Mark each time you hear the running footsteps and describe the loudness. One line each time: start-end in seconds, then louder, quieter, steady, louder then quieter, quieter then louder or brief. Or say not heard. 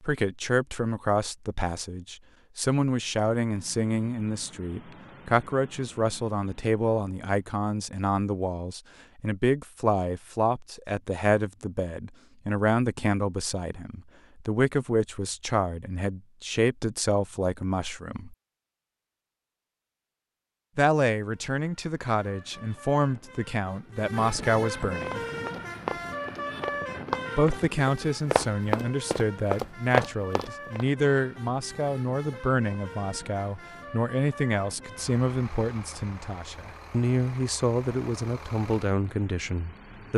25.1-30.9 louder.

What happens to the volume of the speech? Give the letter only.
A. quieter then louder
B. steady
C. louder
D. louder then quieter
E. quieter
B.